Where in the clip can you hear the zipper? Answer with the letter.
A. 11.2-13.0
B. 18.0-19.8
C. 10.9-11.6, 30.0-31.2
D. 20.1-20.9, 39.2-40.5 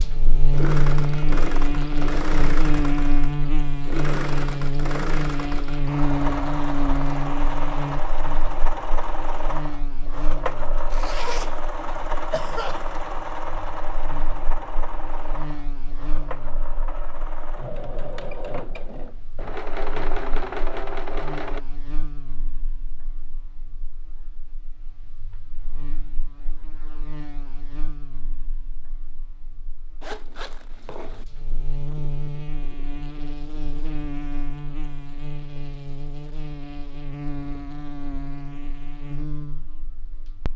C.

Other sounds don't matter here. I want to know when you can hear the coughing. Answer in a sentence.
You can hear the coughing from 11.2 to 13.0 s.